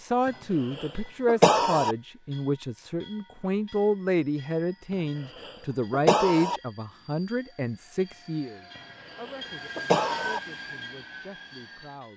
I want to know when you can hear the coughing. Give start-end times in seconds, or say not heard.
0.8-1.9, 5.4-6.6, 9.2-10.4.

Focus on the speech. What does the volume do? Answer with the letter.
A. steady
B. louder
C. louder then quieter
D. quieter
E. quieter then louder
D.